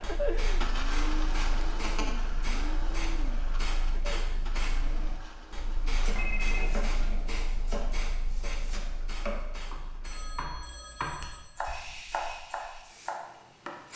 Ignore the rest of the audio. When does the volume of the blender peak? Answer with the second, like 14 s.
1 s.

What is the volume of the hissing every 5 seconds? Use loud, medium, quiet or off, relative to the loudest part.
loud, loud, medium.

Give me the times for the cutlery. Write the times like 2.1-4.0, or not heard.
not heard.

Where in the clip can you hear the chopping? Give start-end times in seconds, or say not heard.
6.0-13.8.